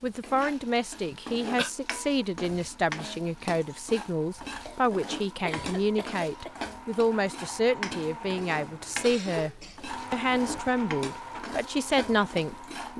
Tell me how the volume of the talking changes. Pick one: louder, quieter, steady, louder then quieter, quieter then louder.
steady.